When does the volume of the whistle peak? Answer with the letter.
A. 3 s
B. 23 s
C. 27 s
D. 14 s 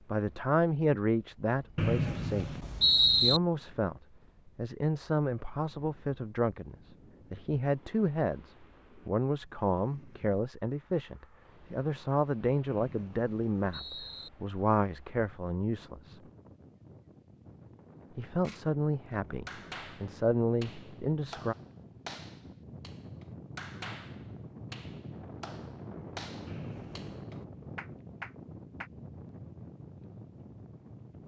A.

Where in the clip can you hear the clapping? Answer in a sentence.
You can hear the clapping from 19.4 to 28.9 s.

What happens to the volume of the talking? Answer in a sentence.
The volume of the talking stays about the same.